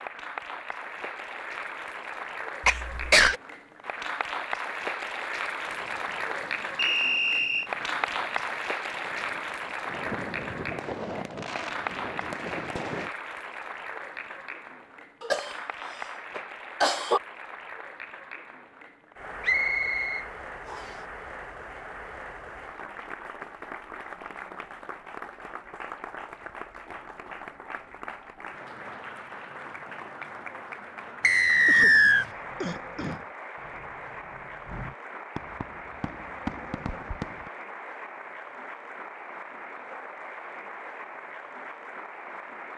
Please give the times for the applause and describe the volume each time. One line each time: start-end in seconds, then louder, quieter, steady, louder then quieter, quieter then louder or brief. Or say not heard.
0.0-42.7 quieter.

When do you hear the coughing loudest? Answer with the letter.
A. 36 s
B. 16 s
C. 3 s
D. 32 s
C.